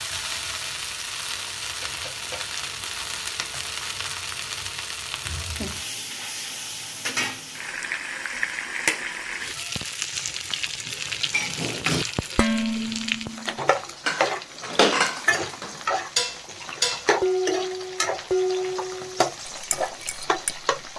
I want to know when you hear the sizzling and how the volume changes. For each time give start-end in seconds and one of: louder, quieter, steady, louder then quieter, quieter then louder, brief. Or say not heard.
0.0-20.9 steady.